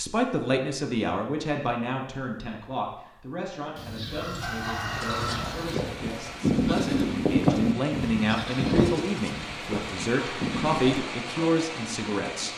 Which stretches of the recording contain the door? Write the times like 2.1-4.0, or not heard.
not heard.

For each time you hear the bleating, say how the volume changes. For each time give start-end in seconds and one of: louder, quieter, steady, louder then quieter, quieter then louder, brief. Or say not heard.
5.0-11.1 louder then quieter.